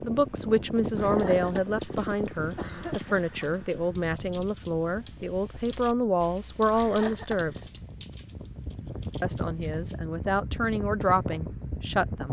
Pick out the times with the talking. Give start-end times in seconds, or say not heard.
0.0-7.5, 9.2-12.2.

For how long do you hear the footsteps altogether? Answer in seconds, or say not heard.
not heard.